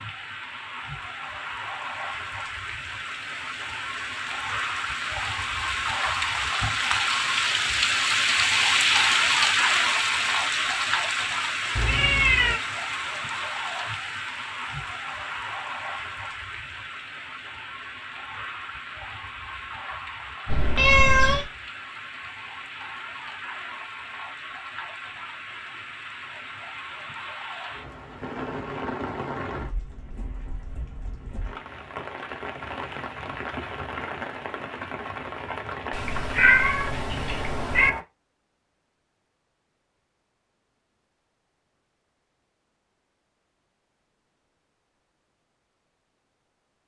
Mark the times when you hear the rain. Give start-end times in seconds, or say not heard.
0.0-38.0.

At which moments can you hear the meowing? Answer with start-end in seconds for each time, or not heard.
11.8-12.6, 20.4-21.4, 35.9-37.9.